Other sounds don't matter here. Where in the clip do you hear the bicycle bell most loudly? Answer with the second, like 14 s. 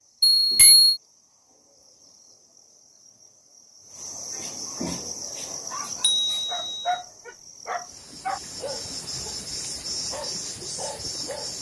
1 s.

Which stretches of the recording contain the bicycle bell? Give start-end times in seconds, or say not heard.
0.2-1.0, 6.0-7.0.